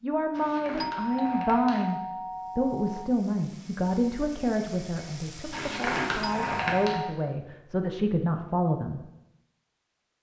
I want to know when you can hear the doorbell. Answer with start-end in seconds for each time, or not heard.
0.8-3.1, 6.2-7.2.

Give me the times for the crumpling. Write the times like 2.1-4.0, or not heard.
0.3-1.9, 5.5-7.0.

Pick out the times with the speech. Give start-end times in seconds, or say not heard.
0.0-9.0.